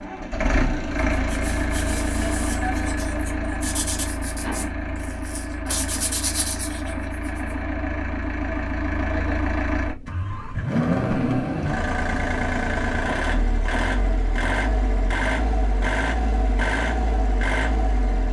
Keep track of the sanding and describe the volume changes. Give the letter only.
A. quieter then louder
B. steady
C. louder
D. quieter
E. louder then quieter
C.